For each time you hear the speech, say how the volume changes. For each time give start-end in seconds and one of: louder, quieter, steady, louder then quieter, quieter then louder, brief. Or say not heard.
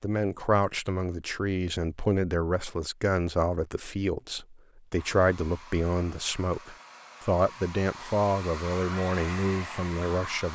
0.0-10.5 steady.